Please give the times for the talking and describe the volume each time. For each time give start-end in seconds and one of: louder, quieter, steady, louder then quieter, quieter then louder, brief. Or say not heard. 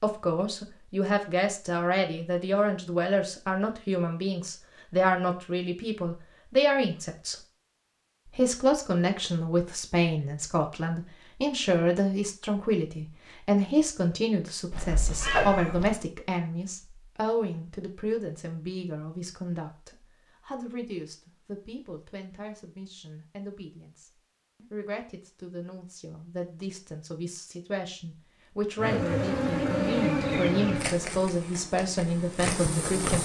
0.0-7.3 steady
8.2-33.1 quieter then louder.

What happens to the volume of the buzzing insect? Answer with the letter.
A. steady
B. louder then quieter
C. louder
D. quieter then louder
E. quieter
D.